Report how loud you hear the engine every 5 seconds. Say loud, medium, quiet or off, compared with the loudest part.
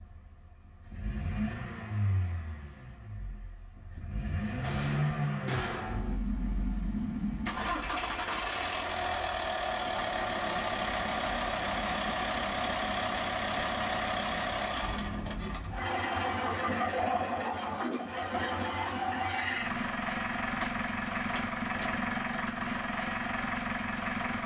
medium, loud, loud, loud, loud.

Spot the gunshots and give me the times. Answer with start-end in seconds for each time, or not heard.
4.6-6.2, 20.6-21.9.